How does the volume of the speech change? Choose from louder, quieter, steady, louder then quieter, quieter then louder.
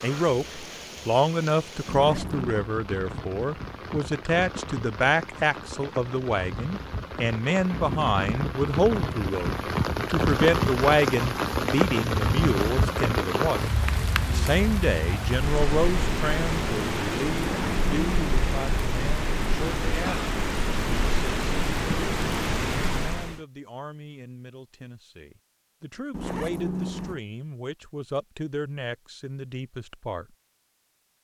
quieter.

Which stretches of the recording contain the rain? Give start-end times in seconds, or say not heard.
0.0-23.4.